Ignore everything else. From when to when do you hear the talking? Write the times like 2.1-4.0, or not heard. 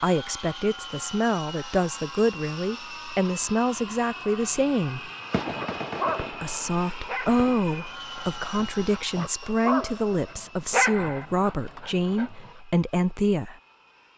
0.0-5.1, 6.3-13.6.